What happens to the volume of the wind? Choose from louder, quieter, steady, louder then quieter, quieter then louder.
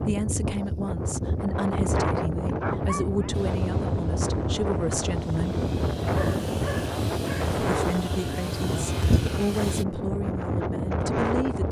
steady.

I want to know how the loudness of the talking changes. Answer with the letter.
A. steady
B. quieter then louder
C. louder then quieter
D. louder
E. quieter
A.